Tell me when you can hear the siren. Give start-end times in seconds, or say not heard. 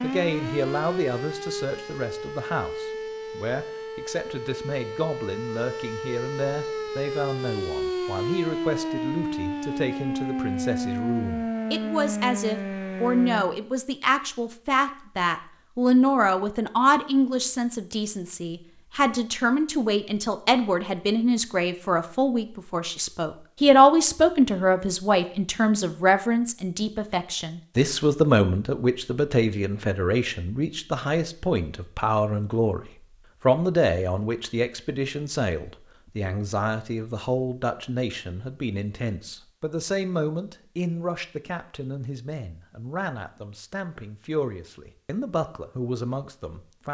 0.0-13.6.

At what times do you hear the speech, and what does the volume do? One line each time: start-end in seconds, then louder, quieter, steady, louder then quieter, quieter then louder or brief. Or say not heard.
0.0-46.8 louder then quieter.